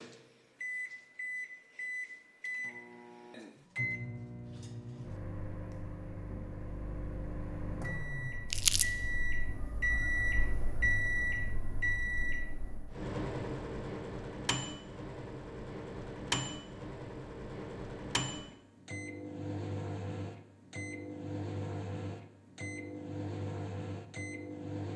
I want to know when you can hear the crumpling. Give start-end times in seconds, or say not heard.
8.5-8.9.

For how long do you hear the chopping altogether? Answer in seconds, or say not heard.
not heard.